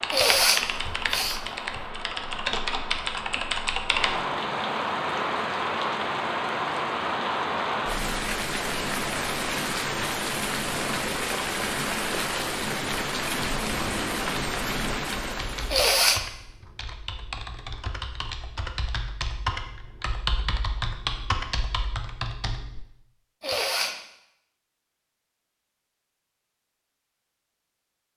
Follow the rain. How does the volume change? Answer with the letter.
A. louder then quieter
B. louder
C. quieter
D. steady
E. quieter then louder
B.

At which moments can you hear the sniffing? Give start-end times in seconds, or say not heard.
0.1-1.8, 15.7-16.2, 23.4-23.9.